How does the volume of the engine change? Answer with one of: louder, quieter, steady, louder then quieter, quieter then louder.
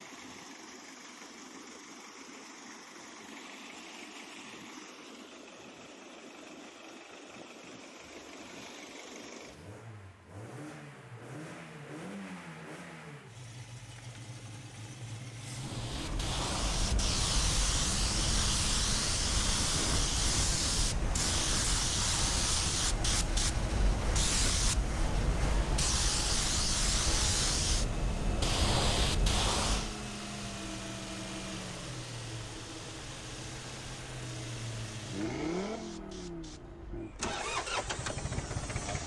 louder.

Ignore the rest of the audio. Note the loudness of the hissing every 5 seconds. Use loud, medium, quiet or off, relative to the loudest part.
off, off, off, loud, loud, loud, quiet, quiet.